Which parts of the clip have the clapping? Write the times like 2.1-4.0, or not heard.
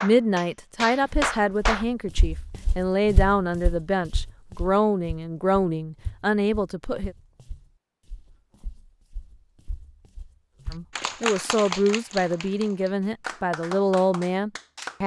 0.0-1.9, 10.7-15.0.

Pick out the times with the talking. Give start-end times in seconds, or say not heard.
0.0-7.2, 10.7-15.0.